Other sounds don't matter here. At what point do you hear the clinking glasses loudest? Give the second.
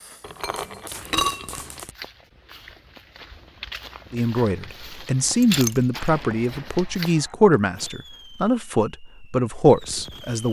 1 s.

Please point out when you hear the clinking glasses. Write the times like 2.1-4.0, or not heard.
0.2-1.9, 5.4-6.1.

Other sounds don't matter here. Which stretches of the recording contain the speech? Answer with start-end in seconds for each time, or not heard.
4.1-10.4.